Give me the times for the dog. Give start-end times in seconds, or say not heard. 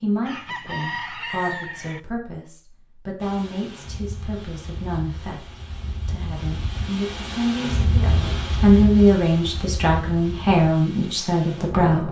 not heard.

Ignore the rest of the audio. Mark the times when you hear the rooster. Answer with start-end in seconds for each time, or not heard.
0.2-2.0.